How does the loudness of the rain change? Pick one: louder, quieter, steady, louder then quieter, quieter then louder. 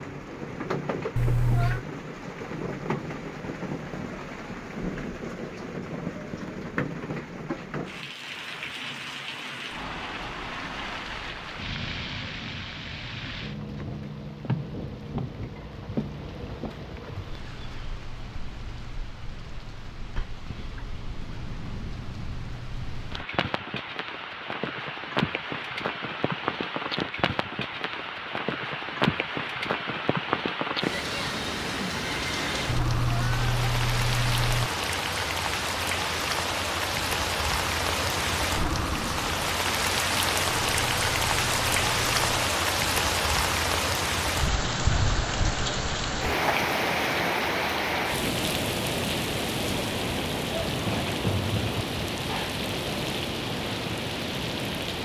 louder.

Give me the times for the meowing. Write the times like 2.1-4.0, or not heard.
1.1-1.9, 32.6-34.7, 40.6-42.2.